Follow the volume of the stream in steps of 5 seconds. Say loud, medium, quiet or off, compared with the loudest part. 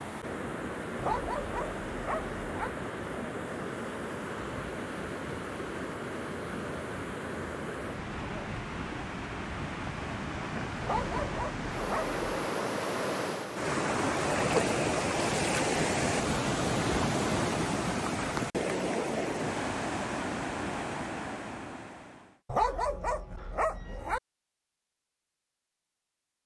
medium, medium, loud, loud, medium, off.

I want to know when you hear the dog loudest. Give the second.
23 s.